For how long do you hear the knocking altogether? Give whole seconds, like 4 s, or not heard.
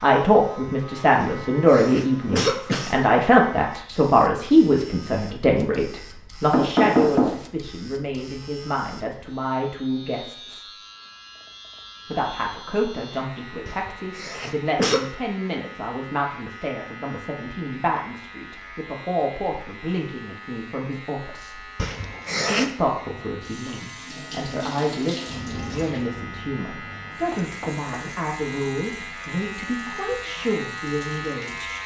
2 s.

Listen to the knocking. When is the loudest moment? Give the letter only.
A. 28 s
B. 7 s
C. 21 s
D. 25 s
B.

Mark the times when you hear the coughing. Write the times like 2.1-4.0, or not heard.
1.1-3.0, 13.7-15.1, 21.8-22.7.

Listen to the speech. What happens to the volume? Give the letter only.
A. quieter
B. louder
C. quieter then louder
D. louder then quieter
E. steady
A.